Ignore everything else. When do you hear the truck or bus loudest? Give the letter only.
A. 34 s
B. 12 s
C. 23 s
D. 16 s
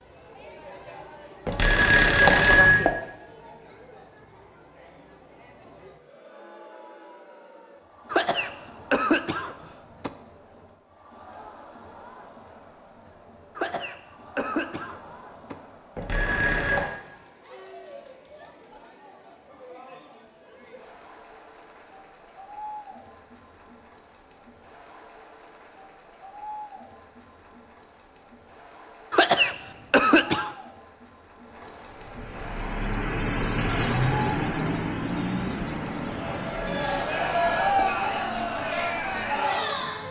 A.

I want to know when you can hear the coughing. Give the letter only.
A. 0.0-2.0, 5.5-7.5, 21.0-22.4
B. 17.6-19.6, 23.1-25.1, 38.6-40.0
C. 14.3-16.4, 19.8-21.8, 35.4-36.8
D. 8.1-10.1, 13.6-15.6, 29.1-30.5
D.